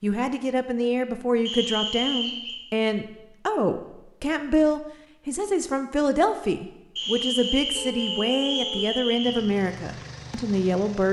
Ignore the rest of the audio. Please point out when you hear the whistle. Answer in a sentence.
The whistle can be heard from 1.4 to 2.5 s and from 7.0 to 9.4 s.